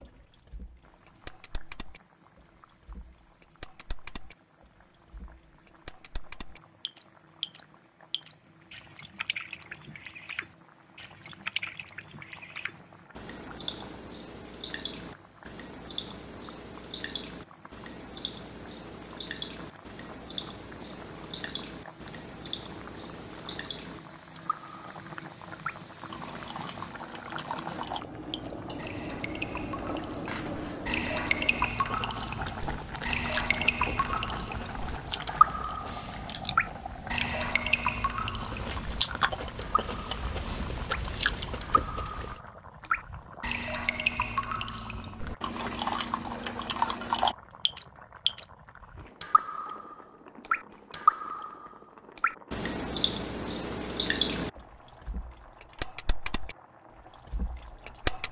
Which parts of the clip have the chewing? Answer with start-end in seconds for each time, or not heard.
32.0-42.4.